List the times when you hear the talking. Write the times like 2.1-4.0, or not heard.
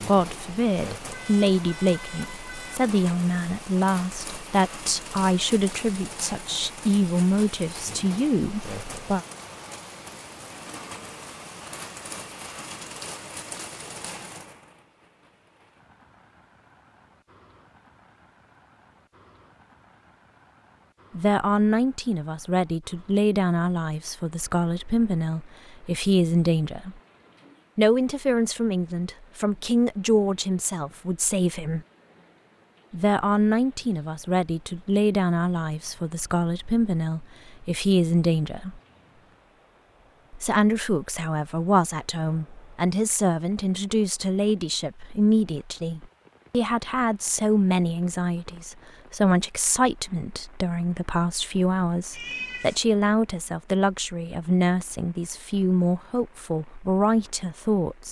0.1-9.2, 21.1-26.9, 27.8-31.9, 32.9-38.8, 40.3-58.0.